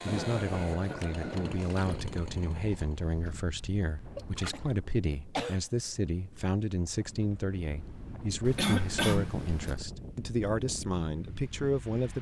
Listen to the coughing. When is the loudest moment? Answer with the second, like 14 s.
9 s.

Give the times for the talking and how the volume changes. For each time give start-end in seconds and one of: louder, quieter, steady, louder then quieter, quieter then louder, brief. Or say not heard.
0.1-12.1 steady.